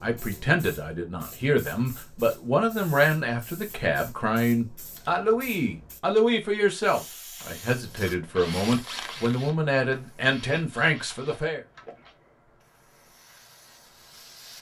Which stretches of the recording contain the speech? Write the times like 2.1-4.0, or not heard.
0.0-11.6.